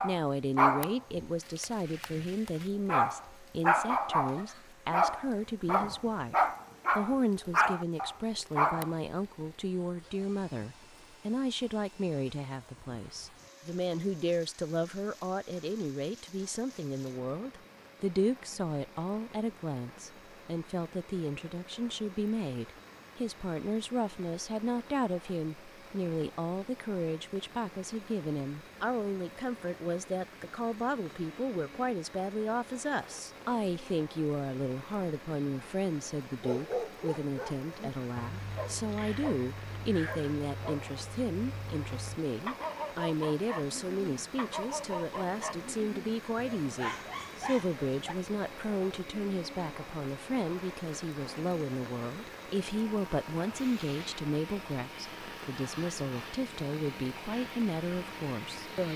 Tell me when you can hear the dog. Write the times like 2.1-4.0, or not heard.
0.0-8.9, 36.4-48.1.